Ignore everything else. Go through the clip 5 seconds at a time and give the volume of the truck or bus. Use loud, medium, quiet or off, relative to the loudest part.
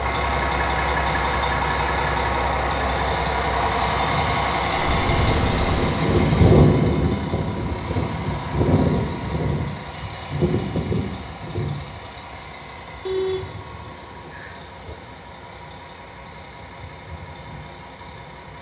loud, loud, medium, quiet.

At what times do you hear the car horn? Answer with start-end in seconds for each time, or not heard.
4.8-6.0, 13.1-14.9.